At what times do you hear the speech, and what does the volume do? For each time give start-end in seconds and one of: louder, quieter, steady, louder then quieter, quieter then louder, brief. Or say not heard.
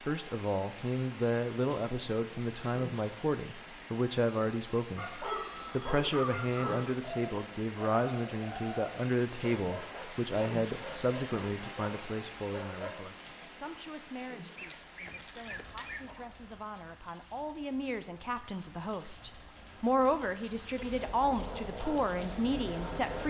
0.1-23.2 quieter then louder.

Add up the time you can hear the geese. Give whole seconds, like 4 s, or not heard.
4 s.